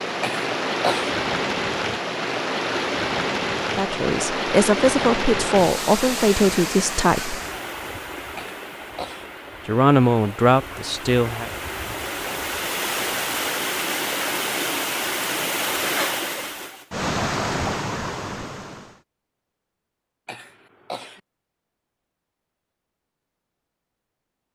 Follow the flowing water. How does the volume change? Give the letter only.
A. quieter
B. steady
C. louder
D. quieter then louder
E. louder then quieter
D.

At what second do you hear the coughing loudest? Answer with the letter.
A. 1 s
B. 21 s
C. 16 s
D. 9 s
A.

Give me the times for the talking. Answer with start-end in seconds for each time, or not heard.
3.8-7.4, 9.7-11.5.